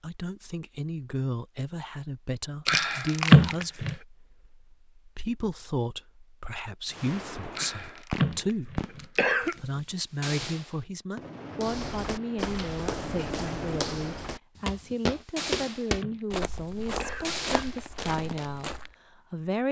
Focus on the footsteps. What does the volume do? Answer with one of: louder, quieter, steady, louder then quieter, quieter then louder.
louder then quieter.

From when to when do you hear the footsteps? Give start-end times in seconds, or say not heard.
11.6-18.9.